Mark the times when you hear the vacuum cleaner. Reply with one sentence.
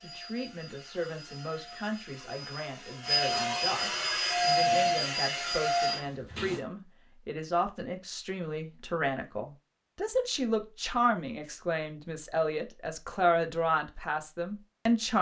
The vacuum cleaner can be heard from 0.0 to 6.6 s.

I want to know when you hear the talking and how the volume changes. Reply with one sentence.
You can hear the talking from 0.0 to 15.1 s, getting louder.